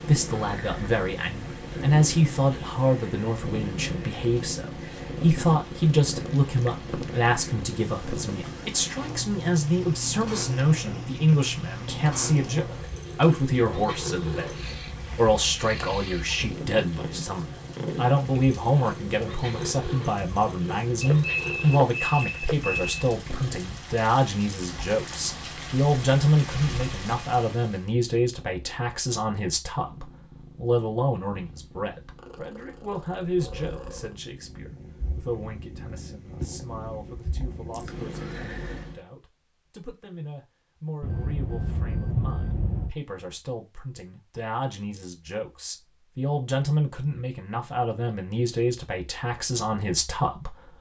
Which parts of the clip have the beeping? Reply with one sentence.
The beeping can be heard from 21.0 to 22.9 s and from 41.0 to 43.0 s.